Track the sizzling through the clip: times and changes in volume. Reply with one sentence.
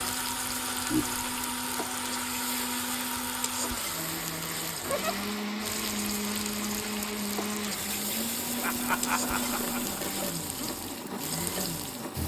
You can hear the sizzling from 0.0 to 12.2 s, at a steady volume.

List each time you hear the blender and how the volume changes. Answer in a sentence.
The blender can be heard from 0.0 to 12.2 s, at a steady volume.